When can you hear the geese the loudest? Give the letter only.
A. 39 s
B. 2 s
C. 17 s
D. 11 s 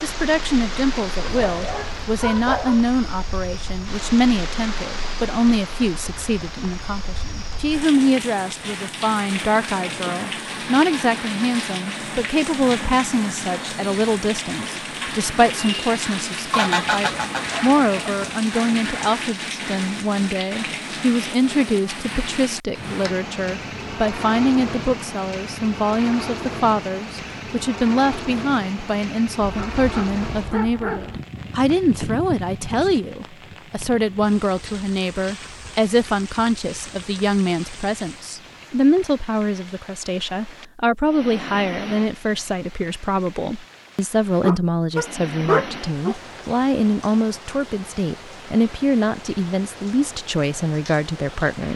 C.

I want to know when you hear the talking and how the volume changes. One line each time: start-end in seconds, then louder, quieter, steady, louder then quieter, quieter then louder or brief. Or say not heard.
0.0-51.7 steady.